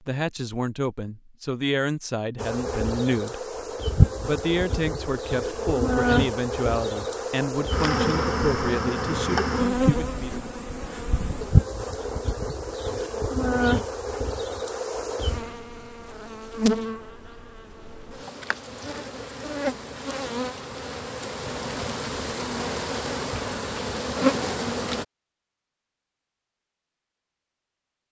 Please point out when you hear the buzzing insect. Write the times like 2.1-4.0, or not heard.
2.4-25.1.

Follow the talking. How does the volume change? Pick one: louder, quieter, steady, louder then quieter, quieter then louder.
steady.